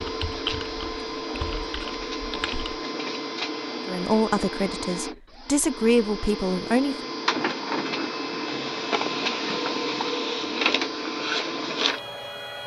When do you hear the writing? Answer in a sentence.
You can't hear the writing here.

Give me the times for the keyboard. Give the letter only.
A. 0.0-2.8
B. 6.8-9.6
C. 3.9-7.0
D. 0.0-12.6
A.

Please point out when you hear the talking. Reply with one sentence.
The talking can be heard from 3.9 to 7.0 s.